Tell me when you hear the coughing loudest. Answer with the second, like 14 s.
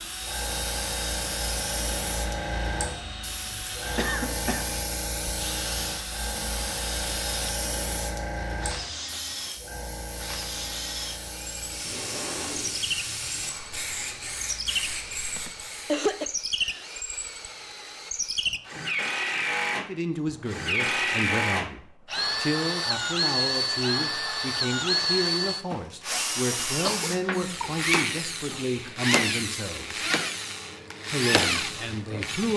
16 s.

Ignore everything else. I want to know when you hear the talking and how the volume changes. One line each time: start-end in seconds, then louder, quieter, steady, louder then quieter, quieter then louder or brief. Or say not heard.
19.9-30.1 steady
31.1-32.5 brief.